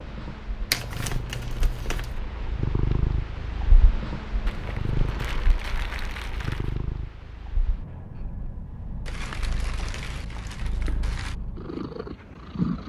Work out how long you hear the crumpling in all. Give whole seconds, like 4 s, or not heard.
6 s.